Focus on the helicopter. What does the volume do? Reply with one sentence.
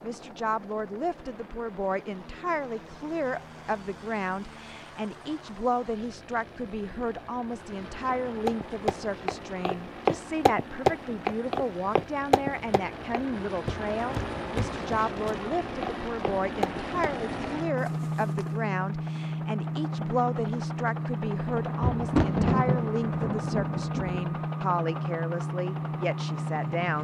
The loudness of the helicopter goes up.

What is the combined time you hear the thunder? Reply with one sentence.
You can hear the thunder for 3 seconds altogether.